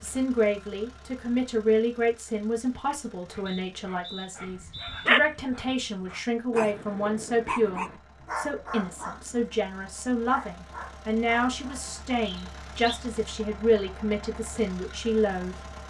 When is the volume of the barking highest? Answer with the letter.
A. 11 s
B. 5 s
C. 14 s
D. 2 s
B.